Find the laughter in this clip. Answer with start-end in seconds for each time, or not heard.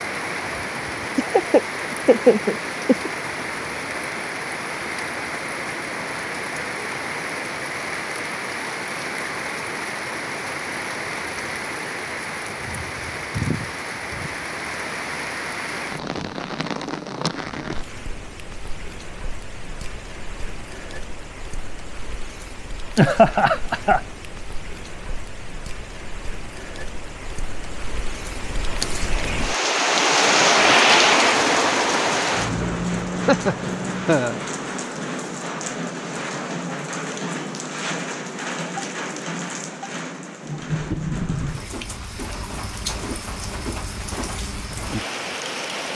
1.1-3.1, 22.9-24.0, 33.2-34.4.